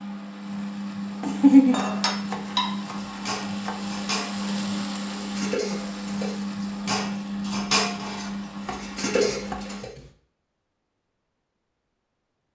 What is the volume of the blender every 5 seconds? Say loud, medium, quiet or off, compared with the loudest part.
loud, loud, off.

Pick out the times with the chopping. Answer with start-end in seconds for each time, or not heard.
1.2-3.8, 8.7-10.1.